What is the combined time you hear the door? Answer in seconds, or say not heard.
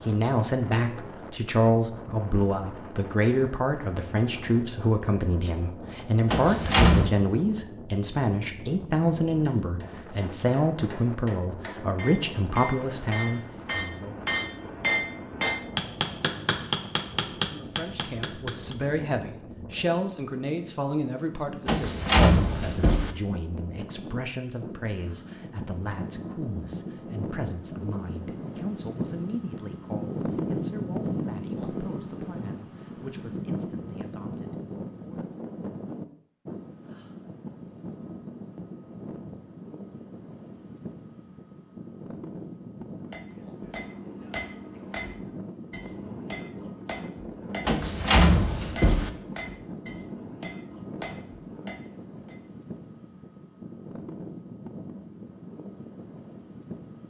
4 s.